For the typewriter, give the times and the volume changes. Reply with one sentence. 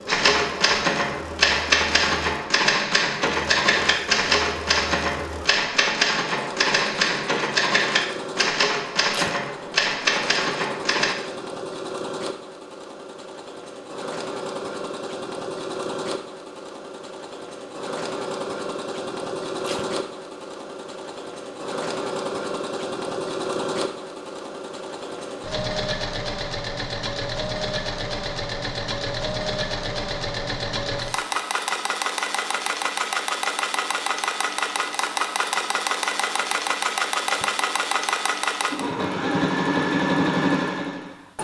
You can hear the typewriter from 0.1 to 11.2 s, at a steady volume.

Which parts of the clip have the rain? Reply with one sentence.
The rain can't be heard in this clip.